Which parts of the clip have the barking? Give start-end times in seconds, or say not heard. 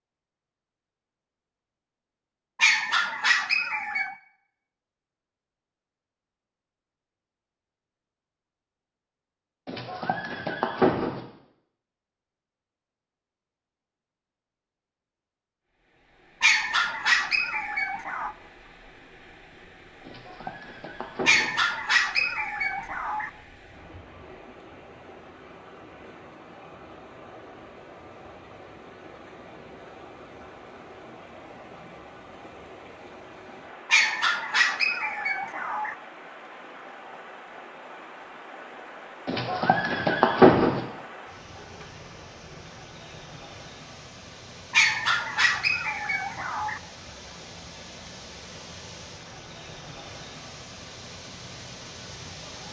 2.5-4.2, 16.4-18.4, 21.2-23.3, 33.9-36.0, 44.7-46.8.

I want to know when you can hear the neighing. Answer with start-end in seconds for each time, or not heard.
9.7-11.2, 20.1-21.6, 39.2-40.8.